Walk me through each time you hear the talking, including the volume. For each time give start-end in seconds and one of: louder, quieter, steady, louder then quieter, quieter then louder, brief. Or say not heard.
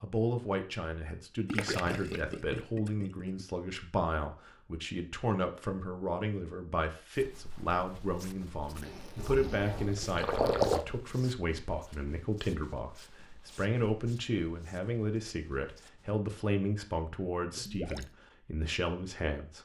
0.0-19.5 steady.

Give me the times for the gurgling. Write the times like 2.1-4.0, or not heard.
1.4-3.5, 9.2-10.8, 17.6-18.1.